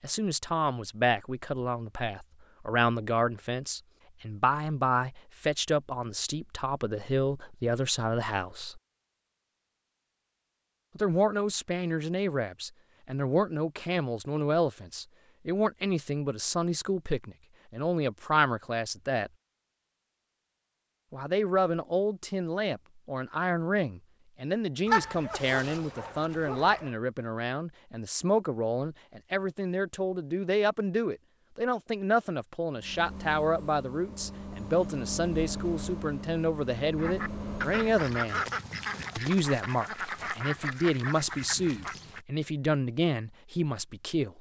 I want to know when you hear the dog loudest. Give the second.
25 s.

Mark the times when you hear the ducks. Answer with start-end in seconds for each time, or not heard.
37.0-42.2.